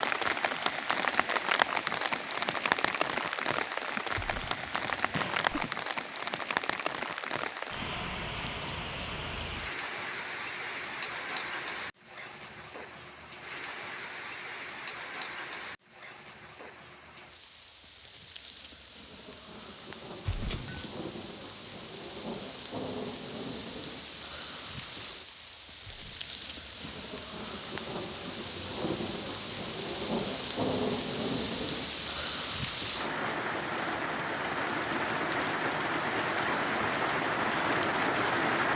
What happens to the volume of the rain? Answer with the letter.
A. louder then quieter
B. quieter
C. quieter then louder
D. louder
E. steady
C.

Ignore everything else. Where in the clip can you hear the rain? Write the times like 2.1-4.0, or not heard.
0.0-38.7.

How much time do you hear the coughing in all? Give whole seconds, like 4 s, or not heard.
4 s.